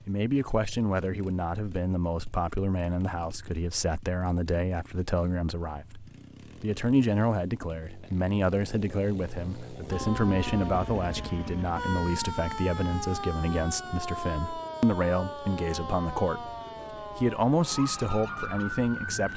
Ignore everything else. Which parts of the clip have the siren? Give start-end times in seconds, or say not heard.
9.9-19.3.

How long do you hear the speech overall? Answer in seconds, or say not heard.
19 s.